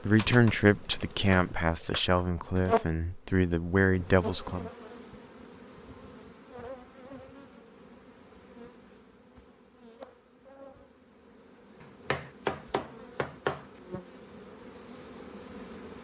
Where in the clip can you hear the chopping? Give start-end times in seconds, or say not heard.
0.8-2.2, 11.8-13.8.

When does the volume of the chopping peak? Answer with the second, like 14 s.
13 s.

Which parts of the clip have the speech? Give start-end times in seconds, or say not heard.
0.1-4.7.